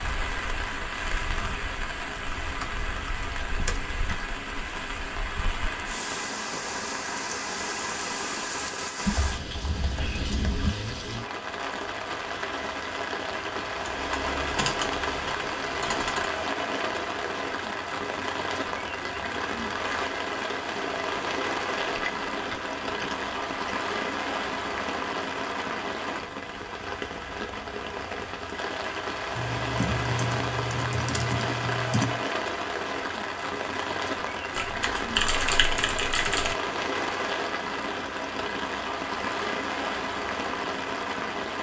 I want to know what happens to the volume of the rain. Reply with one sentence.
The loudness of the rain stays about the same.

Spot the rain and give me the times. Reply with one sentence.
You can hear the rain from 0.0 to 41.5 s.